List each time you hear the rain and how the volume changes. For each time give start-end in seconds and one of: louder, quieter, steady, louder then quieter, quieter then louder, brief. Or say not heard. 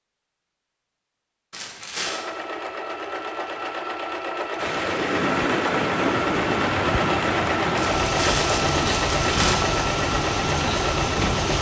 4.5-11.5 steady.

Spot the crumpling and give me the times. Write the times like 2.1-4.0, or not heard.
1.5-2.2, 7.8-9.7.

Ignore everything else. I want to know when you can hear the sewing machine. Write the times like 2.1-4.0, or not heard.
2.0-11.5.